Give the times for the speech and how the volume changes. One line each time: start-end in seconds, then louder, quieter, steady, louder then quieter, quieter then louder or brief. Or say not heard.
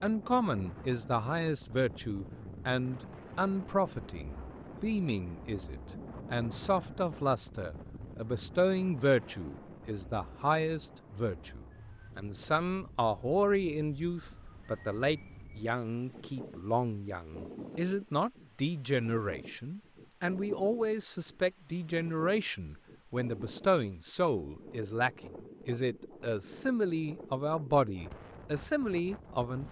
0.0-29.6 steady.